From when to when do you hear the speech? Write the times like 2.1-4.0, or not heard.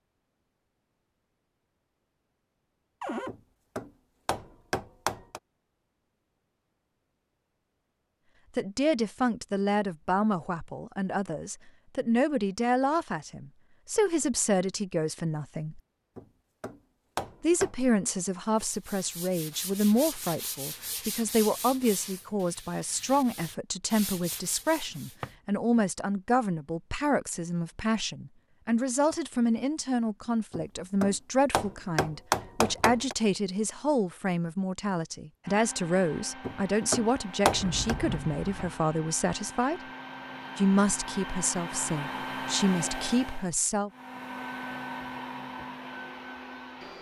8.6-15.8, 17.4-39.8, 40.5-43.9.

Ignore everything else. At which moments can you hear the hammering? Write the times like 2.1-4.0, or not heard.
3.2-5.4, 16.1-17.8, 30.5-33.1, 36.4-38.0.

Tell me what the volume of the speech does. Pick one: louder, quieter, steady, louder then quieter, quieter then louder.
steady.